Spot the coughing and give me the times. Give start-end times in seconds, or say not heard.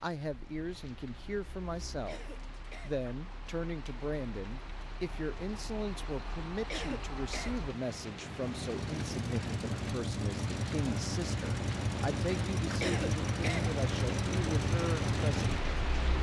2.0-3.0, 6.7-7.5, 12.8-13.7.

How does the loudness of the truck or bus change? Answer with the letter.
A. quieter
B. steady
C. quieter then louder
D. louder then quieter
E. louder
E.